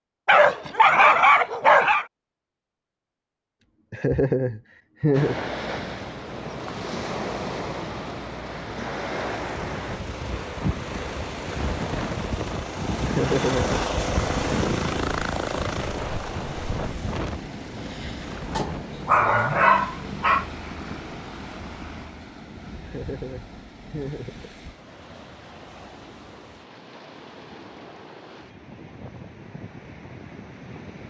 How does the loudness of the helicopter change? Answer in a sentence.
The volume of the helicopter goes up, then down.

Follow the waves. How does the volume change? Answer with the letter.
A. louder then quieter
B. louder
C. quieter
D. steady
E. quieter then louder
C.